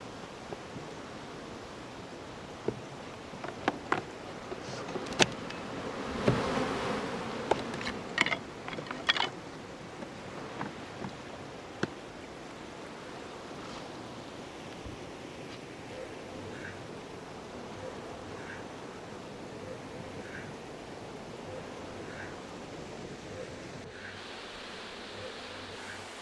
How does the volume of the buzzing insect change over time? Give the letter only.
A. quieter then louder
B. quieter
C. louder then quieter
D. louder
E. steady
B.